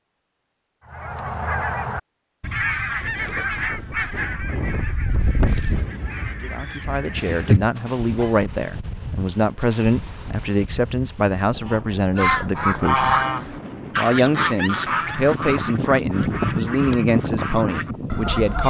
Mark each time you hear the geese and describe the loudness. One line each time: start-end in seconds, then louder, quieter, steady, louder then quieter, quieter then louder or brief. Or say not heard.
0.8-8.3 quieter then louder
11.7-18.6 quieter.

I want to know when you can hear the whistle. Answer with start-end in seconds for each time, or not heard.
not heard.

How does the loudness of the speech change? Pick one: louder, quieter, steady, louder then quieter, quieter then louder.
steady.